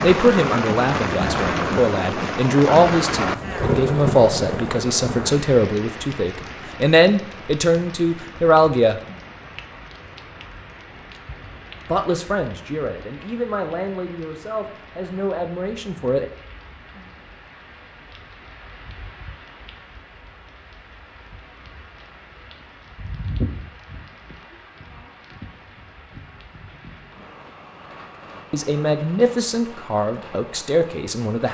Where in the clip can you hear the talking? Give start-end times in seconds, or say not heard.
0.0-9.0, 11.8-16.3, 28.5-31.4.